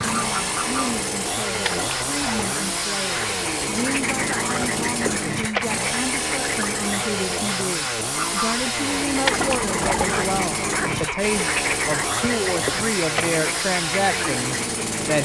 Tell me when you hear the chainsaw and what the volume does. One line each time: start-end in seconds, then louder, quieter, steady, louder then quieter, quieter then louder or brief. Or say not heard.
0.0-15.2 steady.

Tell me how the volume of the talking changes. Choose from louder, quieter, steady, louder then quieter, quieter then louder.
louder.